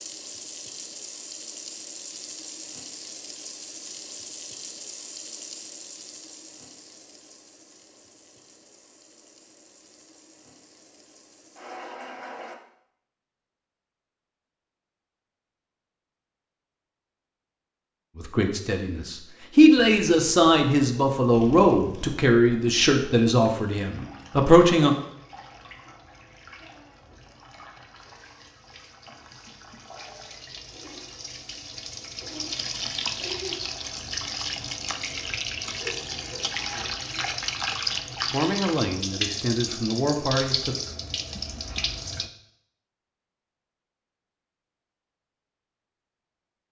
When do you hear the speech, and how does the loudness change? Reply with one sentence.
The speech can be heard from 18.1 to 24.9 s, at a steady volume; and briefly from 38.3 to 40.8 s.